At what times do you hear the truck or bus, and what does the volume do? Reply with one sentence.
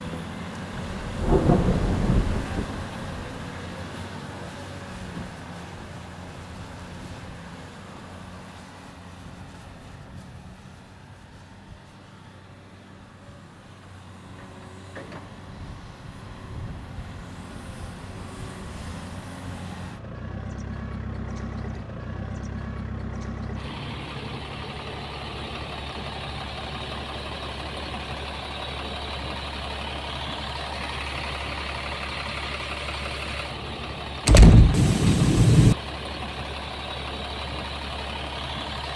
The truck or bus can be heard from 0.0 to 38.9 s, getting quieter then louder.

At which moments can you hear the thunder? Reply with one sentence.
You can hear the thunder from 0.9 to 3.1 s and from 34.2 to 35.8 s.